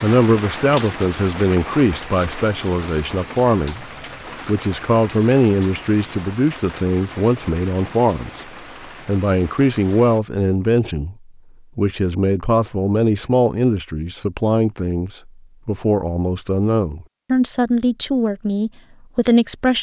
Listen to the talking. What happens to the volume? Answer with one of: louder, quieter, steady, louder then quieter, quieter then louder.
steady.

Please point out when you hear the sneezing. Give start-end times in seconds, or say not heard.
not heard.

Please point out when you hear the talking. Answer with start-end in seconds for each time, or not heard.
0.0-3.9, 4.5-19.7.